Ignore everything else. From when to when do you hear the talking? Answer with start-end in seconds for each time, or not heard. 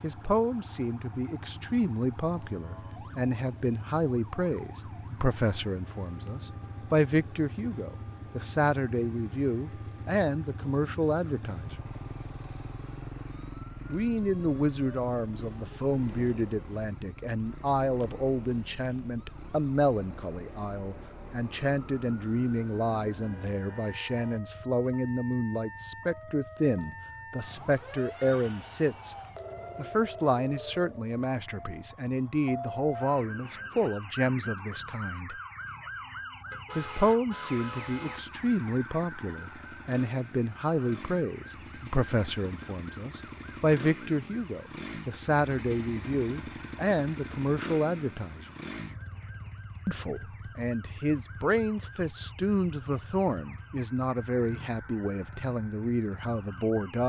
0.0-11.8, 13.9-29.1, 29.8-35.4, 36.8-48.5, 49.9-57.0.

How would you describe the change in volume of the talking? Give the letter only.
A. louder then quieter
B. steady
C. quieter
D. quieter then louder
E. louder
B.